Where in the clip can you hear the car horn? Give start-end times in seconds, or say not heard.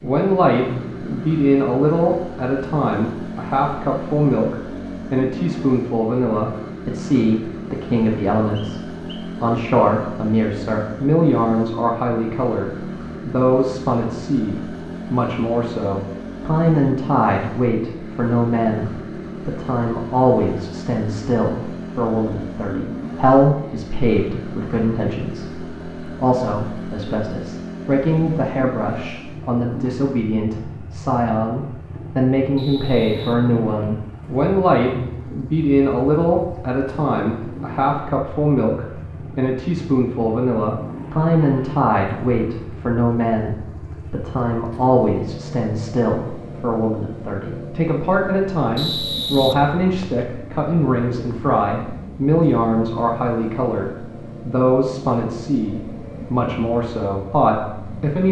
not heard.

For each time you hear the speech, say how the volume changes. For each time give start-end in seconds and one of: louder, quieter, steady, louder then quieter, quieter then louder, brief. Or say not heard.
0.0-58.2 steady.